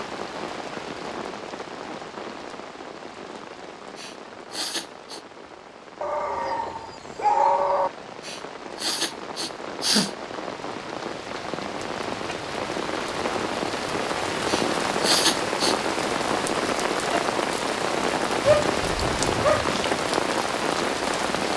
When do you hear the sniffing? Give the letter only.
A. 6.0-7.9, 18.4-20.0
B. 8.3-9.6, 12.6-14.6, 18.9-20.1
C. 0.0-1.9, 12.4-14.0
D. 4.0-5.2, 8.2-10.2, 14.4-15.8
D.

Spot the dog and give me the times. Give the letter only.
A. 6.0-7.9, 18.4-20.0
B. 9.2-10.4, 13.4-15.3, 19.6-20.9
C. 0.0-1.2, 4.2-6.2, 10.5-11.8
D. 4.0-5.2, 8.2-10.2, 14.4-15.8
A.